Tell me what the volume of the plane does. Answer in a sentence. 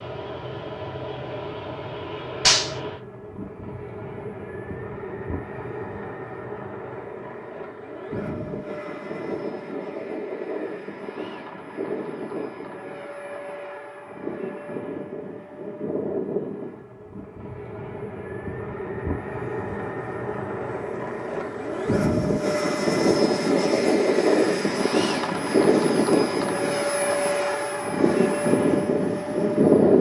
The volume of the plane goes up.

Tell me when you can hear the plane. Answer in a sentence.
You can hear the plane from 0.0 to 29.9 s.